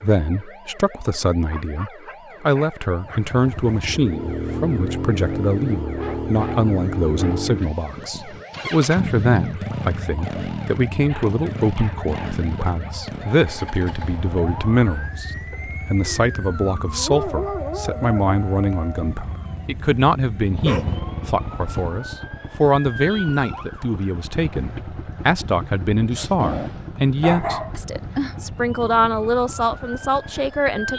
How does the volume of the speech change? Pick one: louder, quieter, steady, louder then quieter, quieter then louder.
steady.